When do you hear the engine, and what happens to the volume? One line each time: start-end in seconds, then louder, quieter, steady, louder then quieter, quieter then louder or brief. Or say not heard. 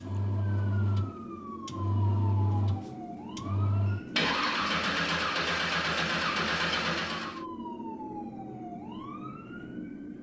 0.0-7.5 louder.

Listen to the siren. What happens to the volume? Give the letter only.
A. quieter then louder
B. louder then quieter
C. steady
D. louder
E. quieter
C.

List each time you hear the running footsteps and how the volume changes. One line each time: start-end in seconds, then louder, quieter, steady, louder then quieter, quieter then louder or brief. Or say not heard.
not heard.